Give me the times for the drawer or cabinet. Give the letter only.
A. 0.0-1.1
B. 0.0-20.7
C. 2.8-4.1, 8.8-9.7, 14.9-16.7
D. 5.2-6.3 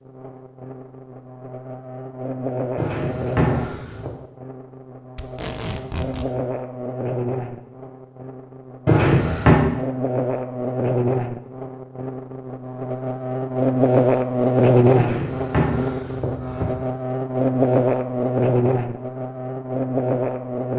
C.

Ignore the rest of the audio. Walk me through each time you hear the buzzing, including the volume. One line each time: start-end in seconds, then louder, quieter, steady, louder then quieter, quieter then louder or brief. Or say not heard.
0.0-20.7 louder.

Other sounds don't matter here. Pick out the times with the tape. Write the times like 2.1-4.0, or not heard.
5.2-6.3.